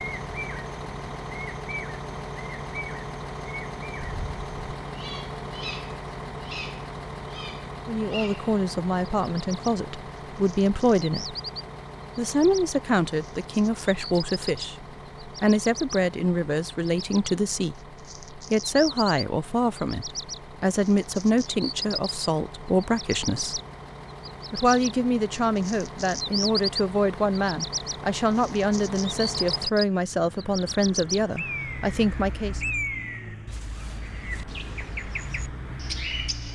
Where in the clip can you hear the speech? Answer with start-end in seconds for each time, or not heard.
7.8-11.3, 12.2-23.6, 24.5-32.6.